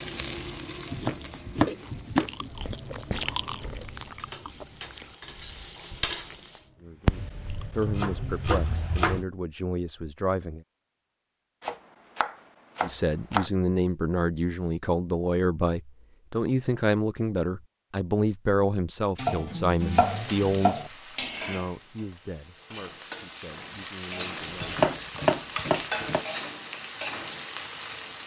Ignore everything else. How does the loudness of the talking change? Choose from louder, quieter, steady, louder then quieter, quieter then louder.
louder then quieter.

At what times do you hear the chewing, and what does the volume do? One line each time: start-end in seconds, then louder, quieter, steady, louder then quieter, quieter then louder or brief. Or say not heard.
1.1-7.7 louder then quieter.